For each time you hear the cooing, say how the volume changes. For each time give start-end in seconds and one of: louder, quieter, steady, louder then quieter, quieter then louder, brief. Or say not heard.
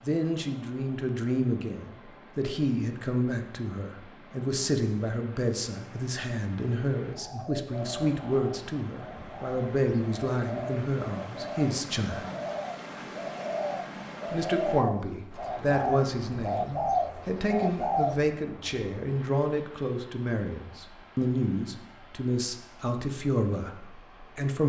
7.1-18.2 louder.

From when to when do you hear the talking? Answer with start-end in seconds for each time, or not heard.
0.0-12.2, 14.3-24.6.